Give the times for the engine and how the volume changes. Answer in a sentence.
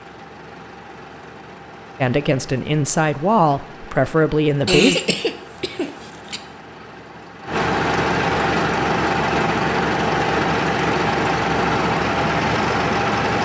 The engine can be heard from 0.0 to 13.4 s, getting louder.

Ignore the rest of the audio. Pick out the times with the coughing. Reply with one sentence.
The coughing can be heard from 4.7 to 6.4 s.